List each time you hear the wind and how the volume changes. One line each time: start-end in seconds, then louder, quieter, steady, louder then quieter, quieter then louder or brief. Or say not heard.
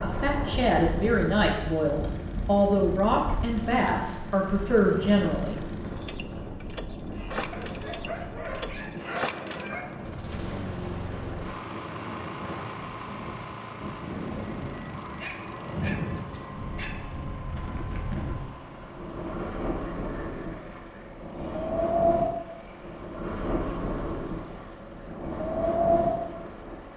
0.0-26.9 louder.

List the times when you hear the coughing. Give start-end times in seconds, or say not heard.
not heard.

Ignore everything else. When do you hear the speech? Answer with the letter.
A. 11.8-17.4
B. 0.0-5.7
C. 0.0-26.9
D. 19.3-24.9
B.